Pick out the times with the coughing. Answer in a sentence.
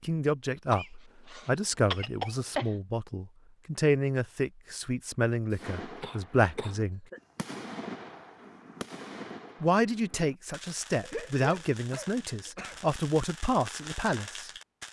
You can hear the coughing from 0.7 to 2.8 s, from 5.5 to 7.2 s and from 11.0 to 12.8 s.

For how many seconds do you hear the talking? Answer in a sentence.
You can hear the talking for 12 seconds altogether.